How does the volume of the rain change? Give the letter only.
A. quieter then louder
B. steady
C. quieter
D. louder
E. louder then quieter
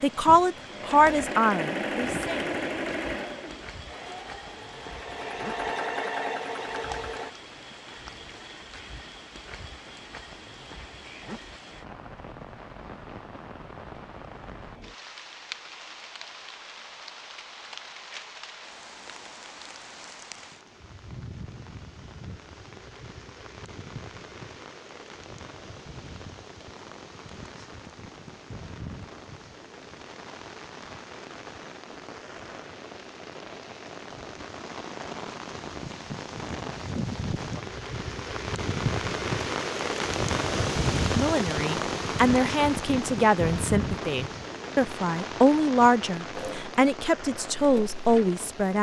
D.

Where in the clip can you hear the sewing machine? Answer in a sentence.
The sewing machine can be heard from 0.0 to 7.3 s and from 46.3 to 48.6 s.